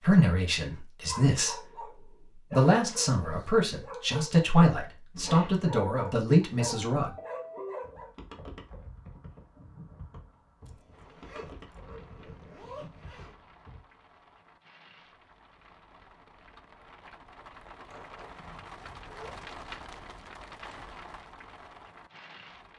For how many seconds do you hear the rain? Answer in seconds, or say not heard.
12 s.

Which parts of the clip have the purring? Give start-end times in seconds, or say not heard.
not heard.